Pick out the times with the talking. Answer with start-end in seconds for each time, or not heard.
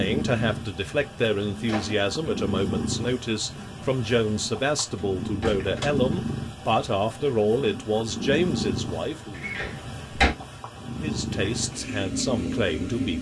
0.0-9.4, 11.0-13.1.